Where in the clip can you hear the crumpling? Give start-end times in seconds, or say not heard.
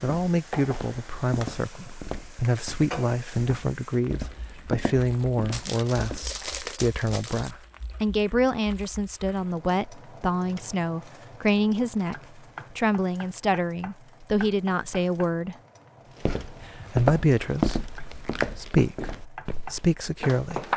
5.5-7.5.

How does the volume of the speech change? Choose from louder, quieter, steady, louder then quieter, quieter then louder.
steady.